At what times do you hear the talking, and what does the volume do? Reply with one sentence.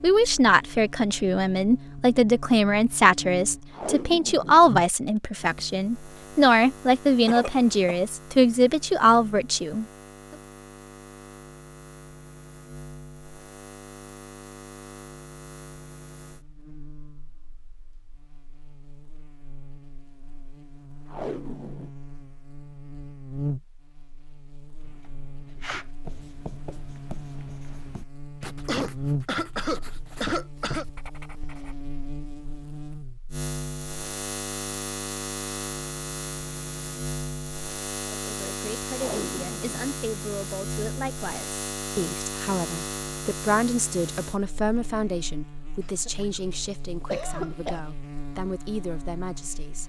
The talking can be heard from 0.0 to 9.8 s, at a steady volume; and from 38.2 to 49.8 s, getting louder then quieter.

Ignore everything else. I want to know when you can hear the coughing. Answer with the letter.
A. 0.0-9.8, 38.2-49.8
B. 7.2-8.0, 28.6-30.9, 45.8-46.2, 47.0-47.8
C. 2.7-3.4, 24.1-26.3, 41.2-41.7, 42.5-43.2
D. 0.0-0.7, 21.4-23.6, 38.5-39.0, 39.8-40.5
B.